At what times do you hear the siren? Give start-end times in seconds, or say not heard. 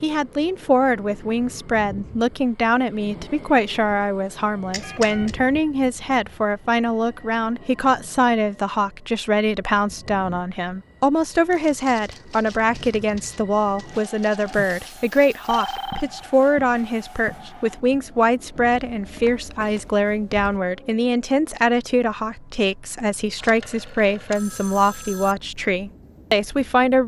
not heard.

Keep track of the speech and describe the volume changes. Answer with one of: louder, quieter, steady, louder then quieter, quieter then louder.
steady.